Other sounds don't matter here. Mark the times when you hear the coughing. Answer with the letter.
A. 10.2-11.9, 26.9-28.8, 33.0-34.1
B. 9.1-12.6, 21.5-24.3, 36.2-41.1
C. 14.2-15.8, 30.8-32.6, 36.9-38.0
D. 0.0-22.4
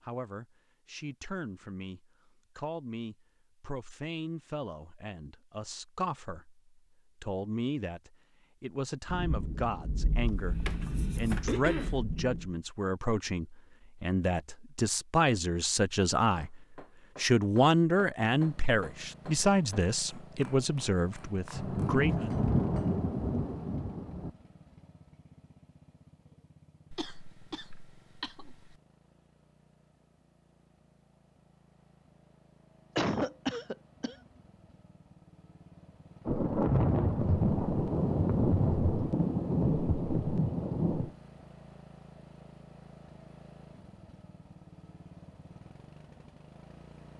A.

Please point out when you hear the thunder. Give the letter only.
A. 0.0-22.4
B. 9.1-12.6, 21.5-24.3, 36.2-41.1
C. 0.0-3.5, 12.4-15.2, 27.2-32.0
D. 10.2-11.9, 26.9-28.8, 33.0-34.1
B.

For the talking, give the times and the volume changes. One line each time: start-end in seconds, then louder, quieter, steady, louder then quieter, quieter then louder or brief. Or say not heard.
0.0-22.4 louder.